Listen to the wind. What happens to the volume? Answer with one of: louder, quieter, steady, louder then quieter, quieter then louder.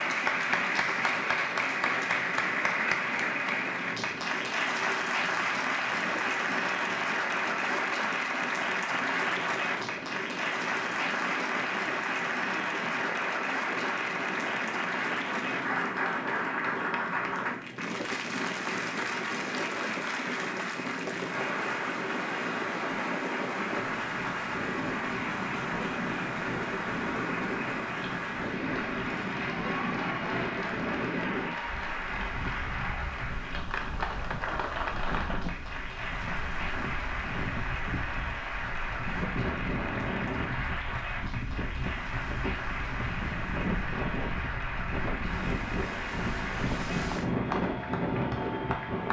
louder.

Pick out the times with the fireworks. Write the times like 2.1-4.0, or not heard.
not heard.